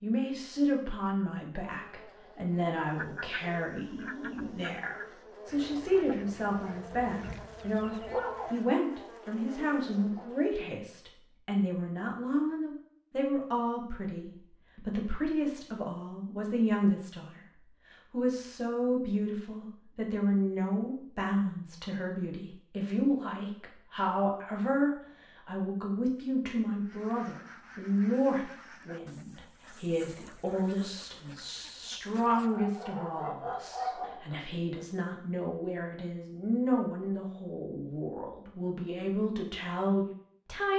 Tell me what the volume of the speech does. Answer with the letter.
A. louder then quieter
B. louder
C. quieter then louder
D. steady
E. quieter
D.